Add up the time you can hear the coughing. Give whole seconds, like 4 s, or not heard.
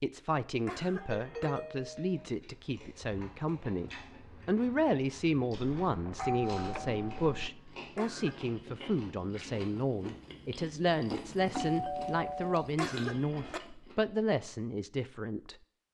2 s.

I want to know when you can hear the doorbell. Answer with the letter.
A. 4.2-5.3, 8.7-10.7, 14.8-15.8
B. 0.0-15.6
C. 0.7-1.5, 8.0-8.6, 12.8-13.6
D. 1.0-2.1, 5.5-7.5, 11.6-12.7
D.